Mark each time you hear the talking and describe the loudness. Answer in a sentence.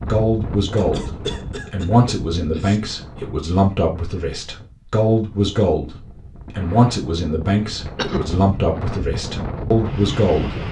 The talking can be heard from 0.1 to 10.6 s, at a steady volume.